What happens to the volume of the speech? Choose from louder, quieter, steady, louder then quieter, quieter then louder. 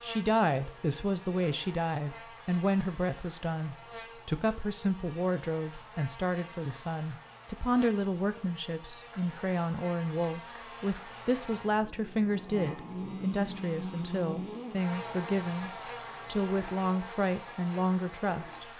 steady.